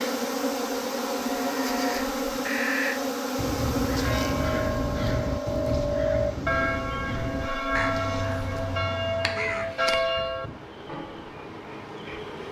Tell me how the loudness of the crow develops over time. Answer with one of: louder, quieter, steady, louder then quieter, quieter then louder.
quieter.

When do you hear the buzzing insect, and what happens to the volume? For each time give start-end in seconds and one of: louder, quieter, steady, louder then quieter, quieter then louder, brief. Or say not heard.
0.0-12.4 quieter.